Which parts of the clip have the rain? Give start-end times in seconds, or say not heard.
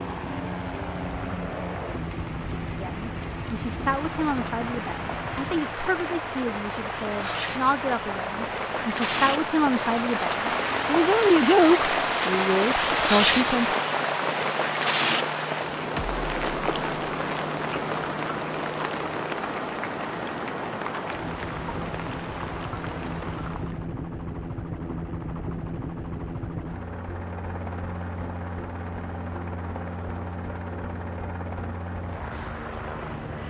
0.0-23.9.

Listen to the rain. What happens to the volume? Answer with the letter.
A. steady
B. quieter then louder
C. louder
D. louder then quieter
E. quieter
D.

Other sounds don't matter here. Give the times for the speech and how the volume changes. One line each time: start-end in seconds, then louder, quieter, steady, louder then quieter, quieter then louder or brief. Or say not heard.
2.8-13.8 louder.